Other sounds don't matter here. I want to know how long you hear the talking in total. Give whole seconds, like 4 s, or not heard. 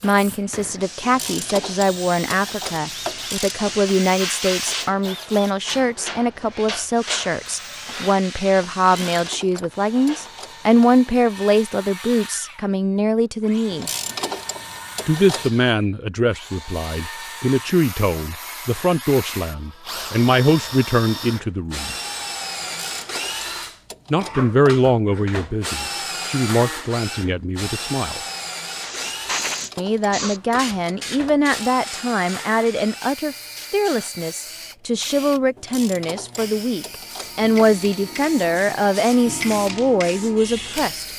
36 s.